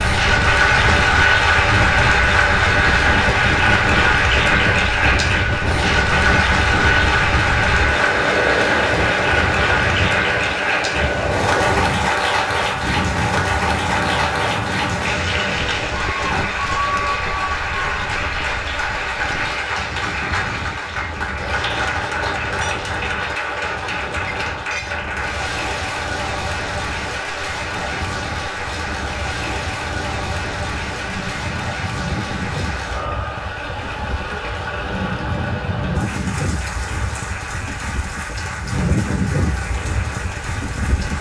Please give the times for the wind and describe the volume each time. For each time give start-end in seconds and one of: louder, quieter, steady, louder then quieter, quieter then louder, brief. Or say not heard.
0.0-41.1 quieter then louder.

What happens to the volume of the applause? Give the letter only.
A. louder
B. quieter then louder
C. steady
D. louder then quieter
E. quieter
E.